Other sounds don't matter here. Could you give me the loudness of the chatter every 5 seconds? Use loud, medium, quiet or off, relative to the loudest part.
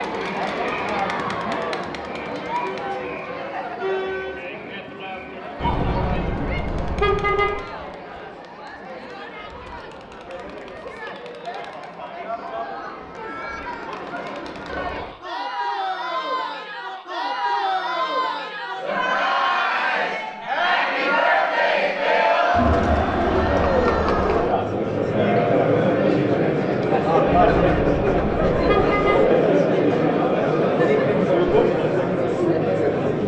medium, quiet, quiet, medium, loud, loud, loud.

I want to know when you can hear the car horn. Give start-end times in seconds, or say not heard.
5.5-7.5, 27.2-29.2.